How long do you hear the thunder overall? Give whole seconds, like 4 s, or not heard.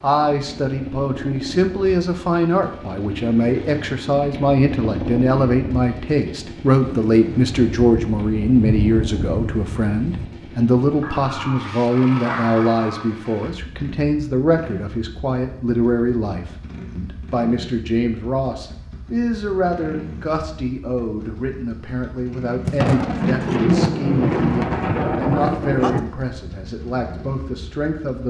7 s.